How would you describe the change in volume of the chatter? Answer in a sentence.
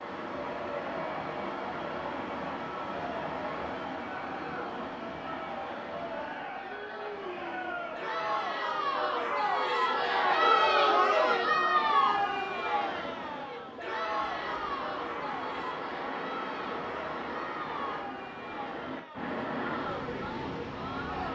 The loudness of the chatter goes up, then down.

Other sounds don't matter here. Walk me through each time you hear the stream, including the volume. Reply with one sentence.
The stream can be heard from 0.0 to 21.3 s, getting quieter then louder.